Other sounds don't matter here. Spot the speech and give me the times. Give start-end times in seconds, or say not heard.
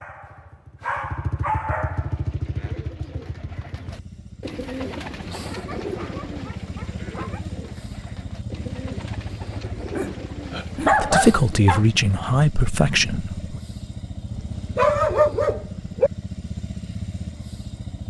10.8-13.6.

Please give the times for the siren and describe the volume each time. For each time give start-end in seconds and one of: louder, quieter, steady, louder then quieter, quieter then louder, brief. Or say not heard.
not heard.